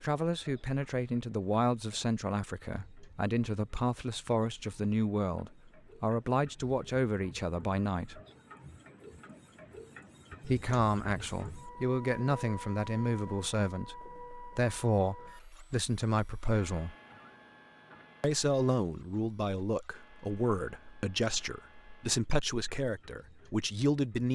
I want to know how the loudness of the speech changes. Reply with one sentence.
The volume of the speech stays about the same.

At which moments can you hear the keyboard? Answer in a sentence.
You can't hear the keyboard here.